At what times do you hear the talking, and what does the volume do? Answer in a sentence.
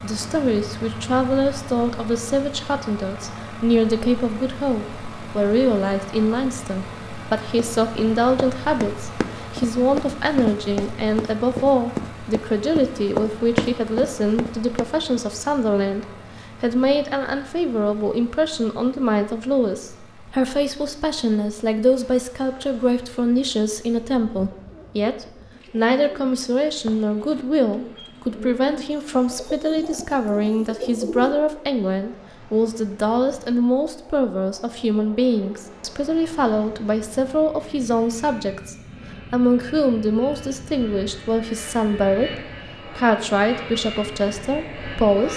You can hear the talking from 0.0 to 45.3 s, at a steady volume.